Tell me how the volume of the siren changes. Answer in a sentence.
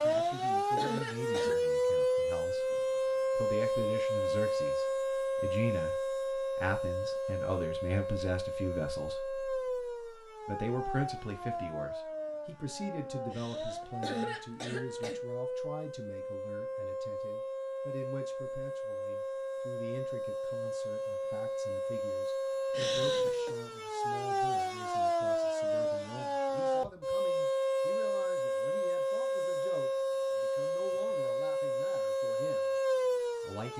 The loudness of the siren goes down, then up.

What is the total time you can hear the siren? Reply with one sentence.
You can hear the siren for 34 seconds altogether.